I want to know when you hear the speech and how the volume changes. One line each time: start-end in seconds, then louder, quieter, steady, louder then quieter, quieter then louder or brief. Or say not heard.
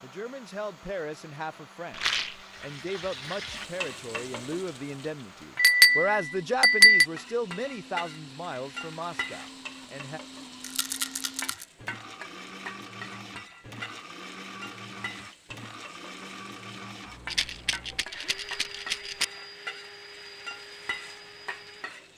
0.0-10.2 louder then quieter.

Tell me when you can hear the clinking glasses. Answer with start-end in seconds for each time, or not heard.
5.5-7.0.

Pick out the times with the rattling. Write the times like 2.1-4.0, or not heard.
1.9-2.4, 10.6-11.7, 17.2-19.2.